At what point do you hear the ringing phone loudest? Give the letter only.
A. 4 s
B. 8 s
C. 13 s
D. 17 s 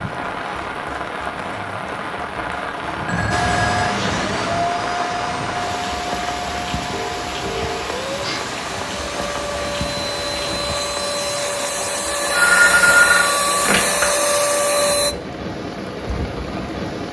C.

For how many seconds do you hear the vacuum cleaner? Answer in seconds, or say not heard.
12 s.